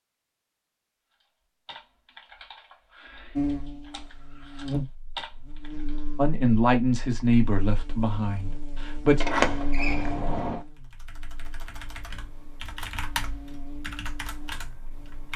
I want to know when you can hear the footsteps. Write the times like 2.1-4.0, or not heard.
not heard.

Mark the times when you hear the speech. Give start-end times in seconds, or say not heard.
6.2-9.2.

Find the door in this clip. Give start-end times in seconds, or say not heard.
9.2-10.7.